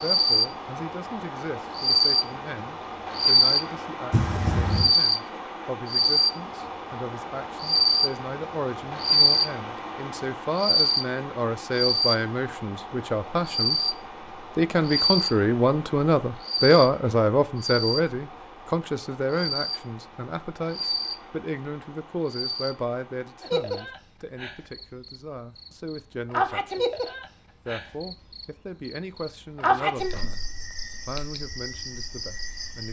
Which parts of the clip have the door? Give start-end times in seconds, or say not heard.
4.1-4.9.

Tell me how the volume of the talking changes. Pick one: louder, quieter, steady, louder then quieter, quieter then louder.
louder then quieter.